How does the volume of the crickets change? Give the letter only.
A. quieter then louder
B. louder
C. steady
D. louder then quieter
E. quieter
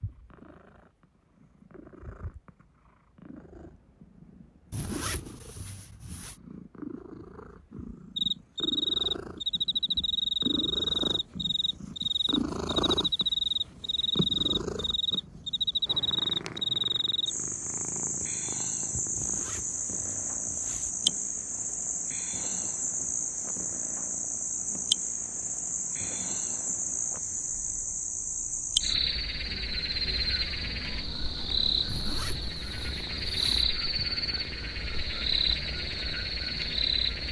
C.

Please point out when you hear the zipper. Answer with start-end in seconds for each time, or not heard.
4.7-6.4, 19.1-20.9, 31.9-33.6.